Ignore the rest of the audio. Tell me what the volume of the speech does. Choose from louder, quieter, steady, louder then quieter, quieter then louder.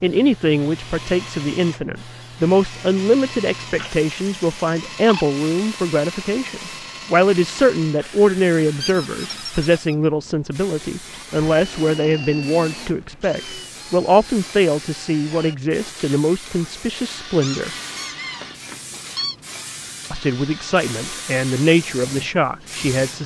steady.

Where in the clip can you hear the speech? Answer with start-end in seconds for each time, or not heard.
0.0-17.7, 20.1-23.2.